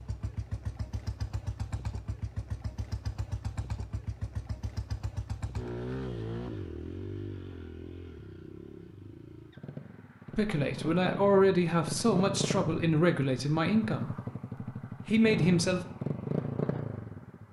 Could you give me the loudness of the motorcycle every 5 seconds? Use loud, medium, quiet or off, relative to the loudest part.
medium, medium, loud, loud.